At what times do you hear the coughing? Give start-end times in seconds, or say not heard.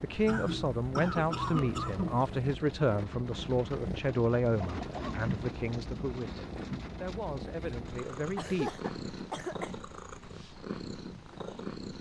0.2-2.2, 4.6-5.2, 8.3-9.8.